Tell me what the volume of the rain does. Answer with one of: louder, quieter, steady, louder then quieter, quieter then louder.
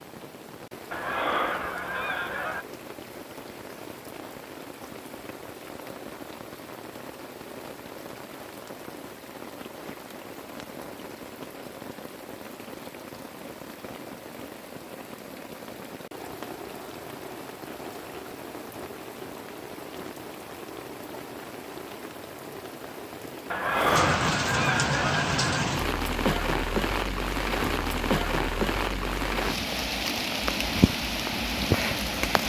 louder.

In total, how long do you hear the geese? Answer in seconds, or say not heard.
4 s.